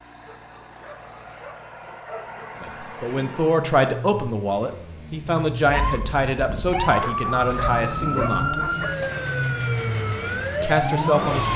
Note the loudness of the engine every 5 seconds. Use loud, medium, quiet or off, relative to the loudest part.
medium, loud, loud.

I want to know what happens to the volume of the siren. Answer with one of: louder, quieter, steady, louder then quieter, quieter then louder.
steady.